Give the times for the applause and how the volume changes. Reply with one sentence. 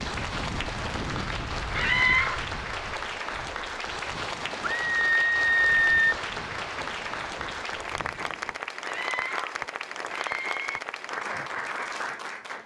The applause can be heard from 0.0 to 12.6 s, at a steady volume.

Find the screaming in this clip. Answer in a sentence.
You can hear the screaming from 1.7 to 2.4 s, from 4.8 to 6.2 s and from 8.8 to 10.8 s.